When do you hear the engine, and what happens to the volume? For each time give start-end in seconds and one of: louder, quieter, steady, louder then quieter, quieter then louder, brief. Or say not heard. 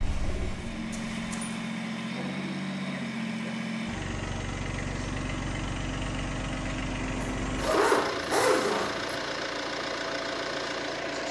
0.0-11.2 steady.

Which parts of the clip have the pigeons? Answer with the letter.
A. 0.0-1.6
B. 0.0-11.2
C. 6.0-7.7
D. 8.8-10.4
A.